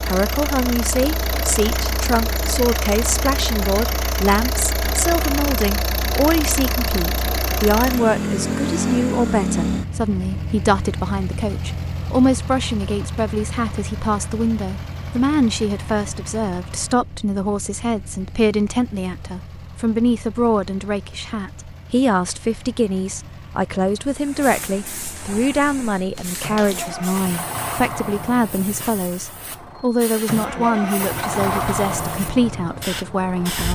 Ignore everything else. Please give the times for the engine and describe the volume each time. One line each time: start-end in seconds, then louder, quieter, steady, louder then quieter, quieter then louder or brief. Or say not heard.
0.0-33.6 quieter then louder.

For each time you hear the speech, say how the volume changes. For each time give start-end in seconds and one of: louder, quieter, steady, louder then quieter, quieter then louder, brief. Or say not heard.
0.1-33.6 steady.